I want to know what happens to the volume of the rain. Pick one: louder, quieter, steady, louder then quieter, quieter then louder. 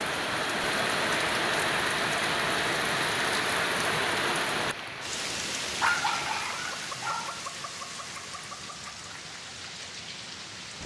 quieter.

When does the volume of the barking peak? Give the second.
6 s.